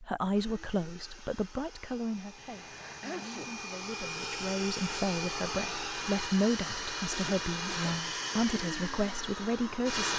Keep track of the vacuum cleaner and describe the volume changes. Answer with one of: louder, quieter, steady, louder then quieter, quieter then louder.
louder.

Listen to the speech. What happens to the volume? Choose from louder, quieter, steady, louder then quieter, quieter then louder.
quieter then louder.